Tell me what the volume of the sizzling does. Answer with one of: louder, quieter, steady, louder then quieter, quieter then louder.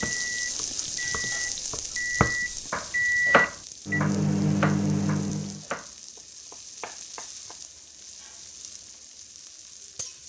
quieter.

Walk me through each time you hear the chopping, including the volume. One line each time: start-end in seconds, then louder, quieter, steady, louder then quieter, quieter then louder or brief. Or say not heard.
0.0-7.8 louder then quieter.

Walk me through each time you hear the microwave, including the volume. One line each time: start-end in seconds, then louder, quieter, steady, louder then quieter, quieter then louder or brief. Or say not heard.
0.0-5.7 louder.